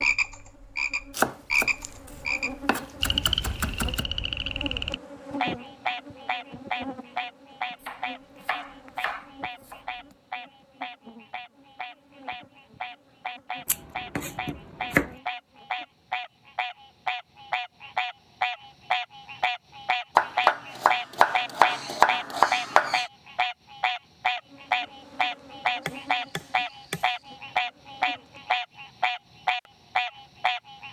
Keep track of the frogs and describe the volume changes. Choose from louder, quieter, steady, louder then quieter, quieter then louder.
quieter then louder.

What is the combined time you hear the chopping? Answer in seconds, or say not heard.
11 s.